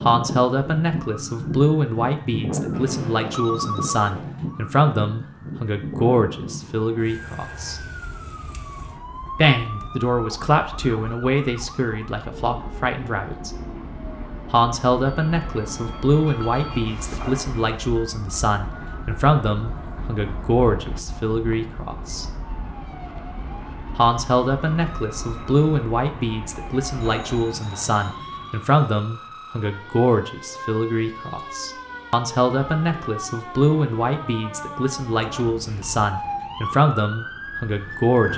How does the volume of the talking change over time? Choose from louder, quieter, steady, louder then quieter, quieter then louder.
steady.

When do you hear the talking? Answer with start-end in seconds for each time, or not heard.
0.0-7.8, 9.3-13.5, 14.5-22.2, 23.9-38.3.